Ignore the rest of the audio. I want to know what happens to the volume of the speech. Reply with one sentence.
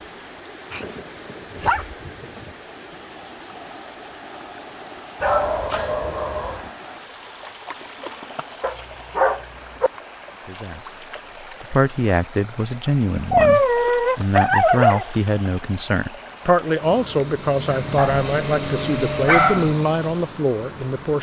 The loudness of the speech stays about the same.